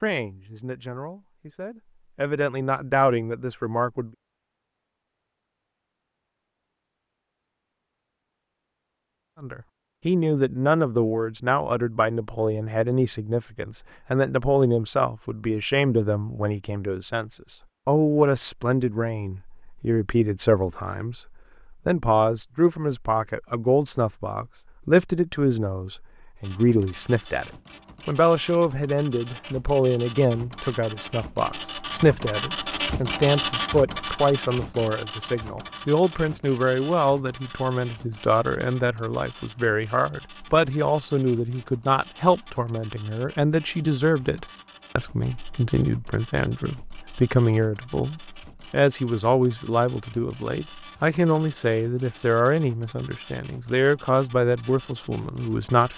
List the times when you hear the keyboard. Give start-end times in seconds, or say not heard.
not heard.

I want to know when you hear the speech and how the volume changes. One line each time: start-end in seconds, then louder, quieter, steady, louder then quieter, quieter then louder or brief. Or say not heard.
0.0-4.1 louder
9.4-55.9 steady.